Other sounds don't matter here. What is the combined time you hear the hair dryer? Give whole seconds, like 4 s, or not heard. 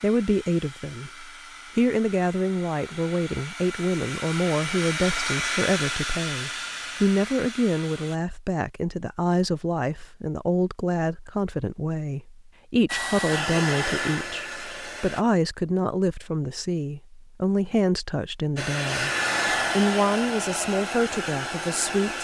14 s.